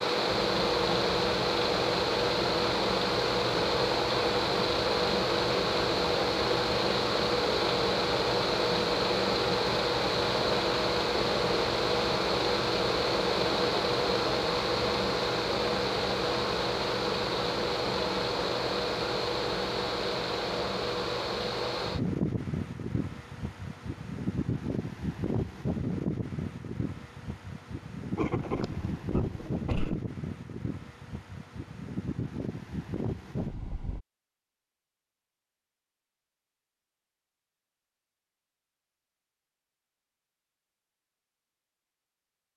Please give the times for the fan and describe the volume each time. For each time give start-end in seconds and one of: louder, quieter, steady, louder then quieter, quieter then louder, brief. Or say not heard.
0.0-34.0 quieter.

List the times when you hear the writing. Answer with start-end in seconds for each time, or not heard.
28.1-29.9.